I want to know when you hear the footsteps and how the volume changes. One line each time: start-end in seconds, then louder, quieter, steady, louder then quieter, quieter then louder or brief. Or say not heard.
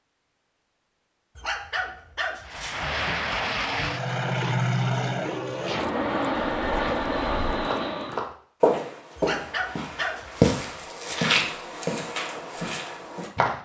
6.5-13.6 louder then quieter.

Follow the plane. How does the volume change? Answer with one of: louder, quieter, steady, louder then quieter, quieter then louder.
steady.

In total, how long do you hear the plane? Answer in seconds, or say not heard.
6 s.